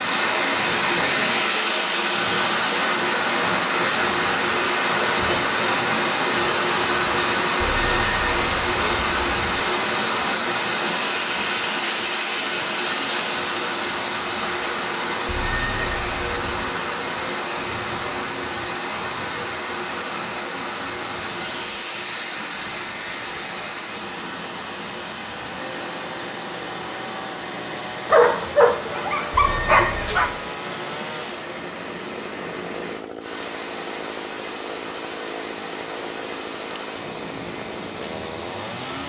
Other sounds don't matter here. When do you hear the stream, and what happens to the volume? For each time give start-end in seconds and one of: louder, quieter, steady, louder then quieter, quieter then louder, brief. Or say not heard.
0.0-39.0 quieter.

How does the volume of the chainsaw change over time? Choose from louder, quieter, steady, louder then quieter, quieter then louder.
steady.